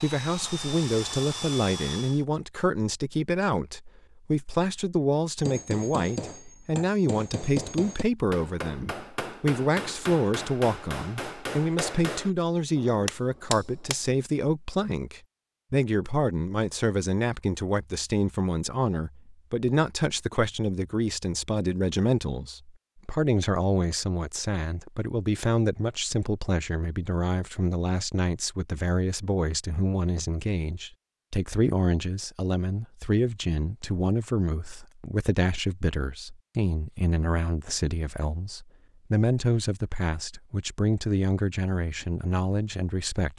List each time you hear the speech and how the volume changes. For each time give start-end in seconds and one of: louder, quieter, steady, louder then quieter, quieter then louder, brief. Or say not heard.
0.0-43.3 steady.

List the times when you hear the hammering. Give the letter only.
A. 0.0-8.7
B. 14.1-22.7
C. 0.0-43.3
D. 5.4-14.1
D.